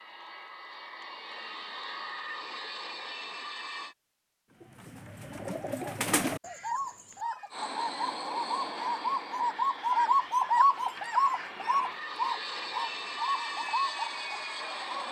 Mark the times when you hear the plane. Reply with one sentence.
The plane can be heard from 0.0 to 4.0 s and from 7.5 to 15.0 s.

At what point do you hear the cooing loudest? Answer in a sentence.
The volume of the cooing peaks at 11 seconds.